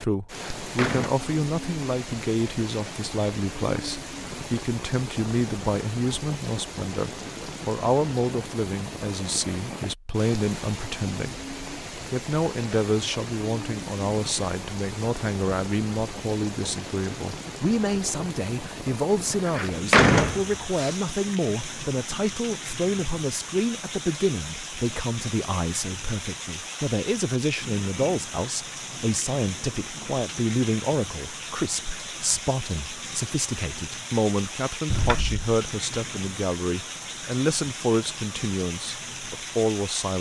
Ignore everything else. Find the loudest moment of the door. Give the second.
20 s.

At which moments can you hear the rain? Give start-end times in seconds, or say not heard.
0.0-40.1.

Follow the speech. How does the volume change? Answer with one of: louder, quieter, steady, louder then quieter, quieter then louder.
steady.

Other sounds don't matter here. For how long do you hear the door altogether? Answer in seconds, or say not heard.
3 s.